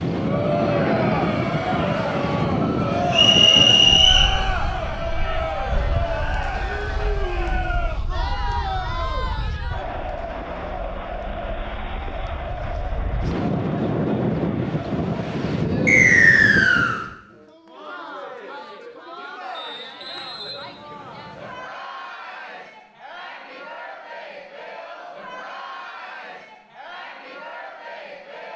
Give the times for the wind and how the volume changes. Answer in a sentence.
The wind can be heard from 0.0 to 17.1 s, getting quieter then louder.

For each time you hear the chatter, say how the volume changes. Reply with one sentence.
You can hear the chatter from 0.1 to 28.5 s, getting quieter.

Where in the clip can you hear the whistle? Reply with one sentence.
The whistle can be heard from 3.1 to 4.3 s, from 15.8 to 17.0 s and from 19.5 to 21.6 s.